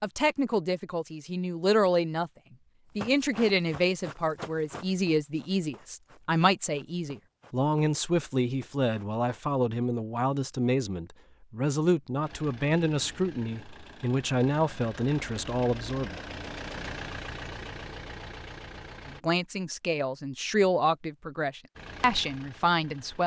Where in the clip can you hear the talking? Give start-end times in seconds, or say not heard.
0.0-2.3, 3.0-16.1, 19.1-23.2.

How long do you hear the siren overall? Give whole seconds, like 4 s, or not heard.
not heard.